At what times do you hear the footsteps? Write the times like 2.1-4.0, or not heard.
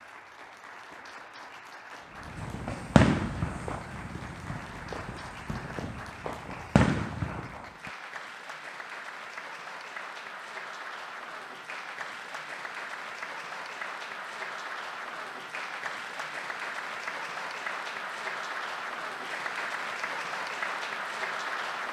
not heard.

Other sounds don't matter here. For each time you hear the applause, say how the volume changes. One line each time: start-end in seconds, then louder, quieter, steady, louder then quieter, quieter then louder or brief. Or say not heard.
0.0-21.8 louder.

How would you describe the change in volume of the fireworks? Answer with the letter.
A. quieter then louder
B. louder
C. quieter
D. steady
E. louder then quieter
A.